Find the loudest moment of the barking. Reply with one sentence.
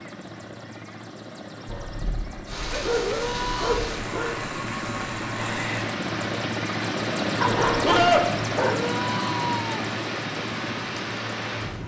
The volume of the barking peaks at 8 seconds.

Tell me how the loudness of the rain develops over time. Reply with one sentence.
The loudness of the rain stays about the same.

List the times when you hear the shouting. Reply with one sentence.
The shouting can be heard from 3.0 to 3.8 s and from 8.6 to 9.8 s.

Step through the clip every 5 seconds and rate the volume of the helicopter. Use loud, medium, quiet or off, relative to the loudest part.
medium, loud, medium.